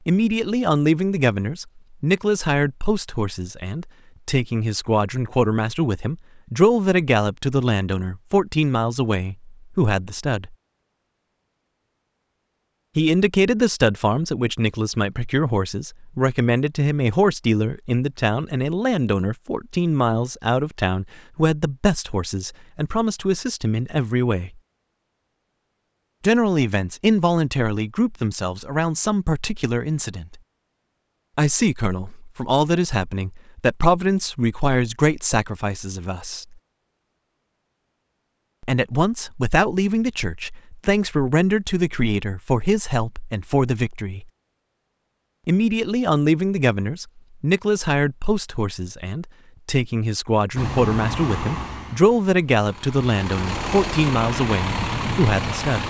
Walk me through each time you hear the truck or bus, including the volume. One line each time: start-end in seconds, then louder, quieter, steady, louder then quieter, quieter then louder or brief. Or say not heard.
50.5-55.8 quieter then louder.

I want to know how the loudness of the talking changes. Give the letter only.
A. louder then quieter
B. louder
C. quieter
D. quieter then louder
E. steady
E.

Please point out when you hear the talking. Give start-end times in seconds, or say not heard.
0.1-10.6, 12.9-24.5, 26.2-30.4, 31.4-36.5, 38.6-44.2, 45.5-55.8.